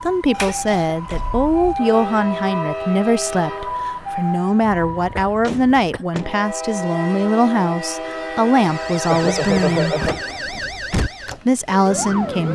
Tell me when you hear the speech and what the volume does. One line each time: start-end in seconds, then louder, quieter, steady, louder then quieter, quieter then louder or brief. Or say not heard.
0.0-10.0 steady
11.4-12.5 brief.